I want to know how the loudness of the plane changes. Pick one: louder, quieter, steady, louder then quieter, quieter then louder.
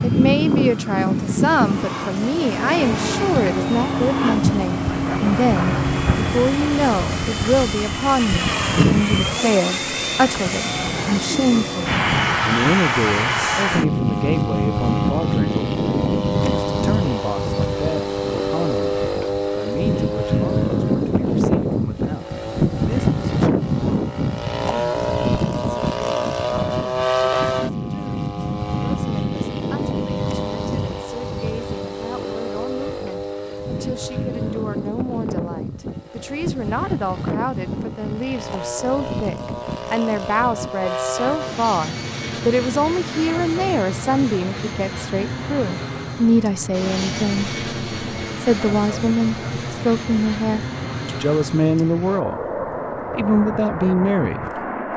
quieter.